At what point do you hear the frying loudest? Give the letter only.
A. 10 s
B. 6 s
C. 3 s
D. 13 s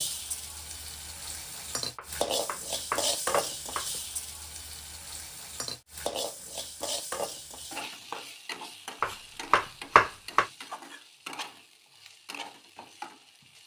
C.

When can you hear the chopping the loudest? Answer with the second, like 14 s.
10 s.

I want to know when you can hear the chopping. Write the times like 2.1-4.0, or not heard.
1.9-3.9, 9.0-10.4.